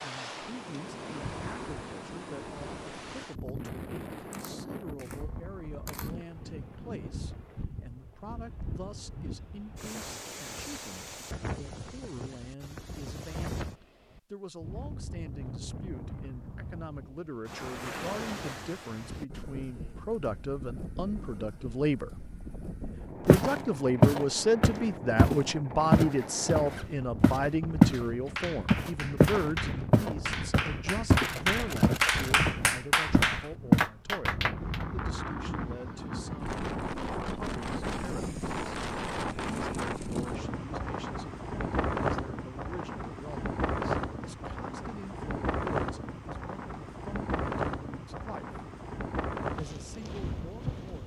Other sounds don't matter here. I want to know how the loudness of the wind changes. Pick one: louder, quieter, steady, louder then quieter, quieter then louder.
louder.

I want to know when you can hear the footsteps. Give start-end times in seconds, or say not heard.
23.2-28.0, 28.7-33.9.